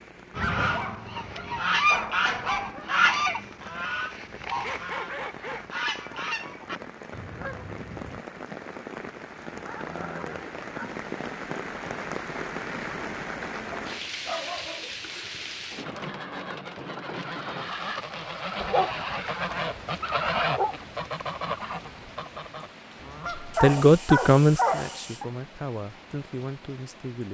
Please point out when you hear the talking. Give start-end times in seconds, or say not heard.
23.4-27.2.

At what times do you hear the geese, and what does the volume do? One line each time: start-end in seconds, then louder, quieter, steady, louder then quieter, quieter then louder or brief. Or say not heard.
0.3-8.2 quieter
15.8-23.7 louder then quieter.